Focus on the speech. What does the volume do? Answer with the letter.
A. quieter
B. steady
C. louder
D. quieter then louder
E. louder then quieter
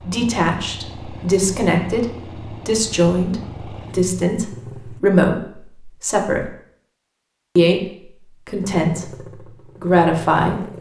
B.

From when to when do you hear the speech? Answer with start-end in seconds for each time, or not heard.
0.0-6.5, 7.5-10.7.